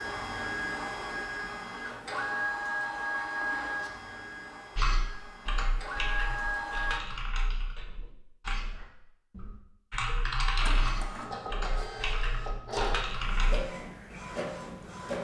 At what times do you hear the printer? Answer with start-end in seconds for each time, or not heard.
0.0-7.0, 10.6-15.2.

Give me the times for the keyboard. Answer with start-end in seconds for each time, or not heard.
4.8-13.6.